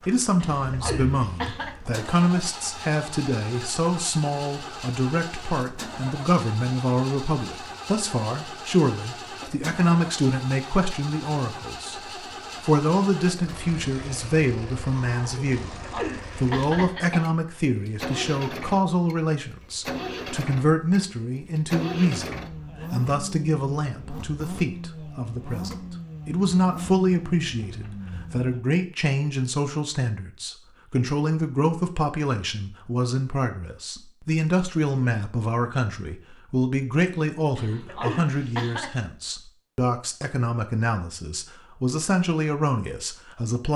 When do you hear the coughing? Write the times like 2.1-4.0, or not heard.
0.4-1.8, 15.5-17.3, 37.5-38.9.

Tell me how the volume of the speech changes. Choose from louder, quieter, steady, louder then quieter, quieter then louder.
steady.